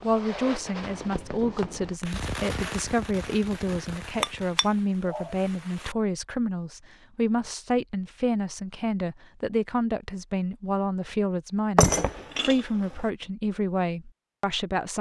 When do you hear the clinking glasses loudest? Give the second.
12 s.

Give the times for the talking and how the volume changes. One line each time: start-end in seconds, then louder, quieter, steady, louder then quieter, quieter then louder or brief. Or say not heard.
0.0-14.9 steady.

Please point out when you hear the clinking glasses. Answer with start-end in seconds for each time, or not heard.
4.2-5.3, 11.8-12.6.